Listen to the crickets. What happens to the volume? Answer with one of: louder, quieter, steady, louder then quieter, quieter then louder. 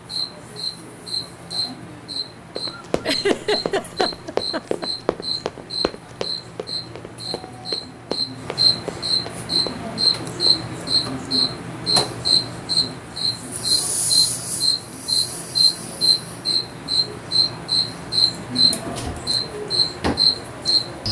louder.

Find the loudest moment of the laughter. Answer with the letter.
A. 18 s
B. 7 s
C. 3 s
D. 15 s
C.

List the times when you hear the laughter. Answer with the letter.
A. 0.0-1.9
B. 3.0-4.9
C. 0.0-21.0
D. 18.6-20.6
B.